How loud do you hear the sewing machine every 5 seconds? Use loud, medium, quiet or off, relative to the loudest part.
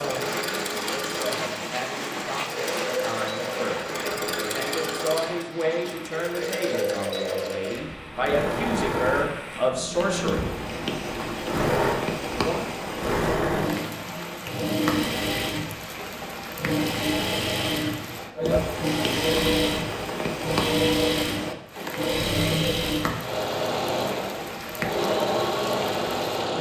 medium, medium, loud, loud, loud, loud.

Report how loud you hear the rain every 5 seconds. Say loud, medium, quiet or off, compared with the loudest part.
loud, medium, loud, loud, loud, loud.